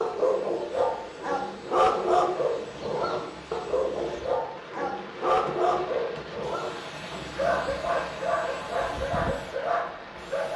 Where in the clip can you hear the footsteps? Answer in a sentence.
The footsteps can't be heard in this clip.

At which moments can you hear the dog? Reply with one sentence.
The dog can be heard from 0.0 to 10.5 s.